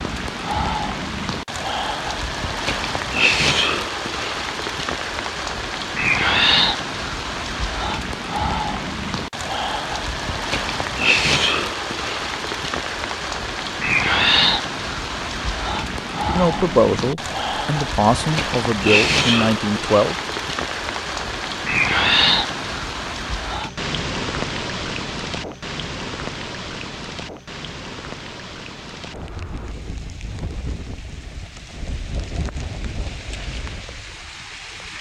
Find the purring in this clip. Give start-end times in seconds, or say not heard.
not heard.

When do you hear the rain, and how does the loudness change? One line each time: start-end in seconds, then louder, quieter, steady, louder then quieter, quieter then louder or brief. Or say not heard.
0.0-34.9 quieter.